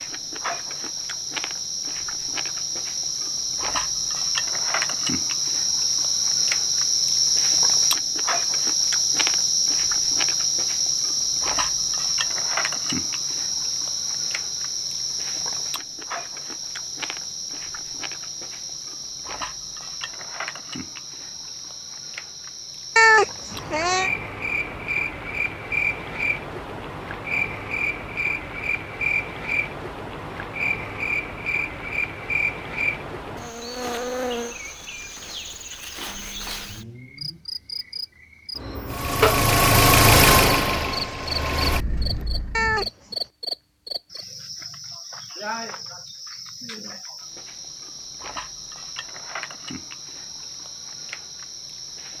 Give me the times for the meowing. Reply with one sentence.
The meowing can be heard from 22.9 to 24.1 s and from 42.5 to 43.1 s.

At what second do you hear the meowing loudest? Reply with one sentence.
The volume of the meowing peaks at 23 seconds.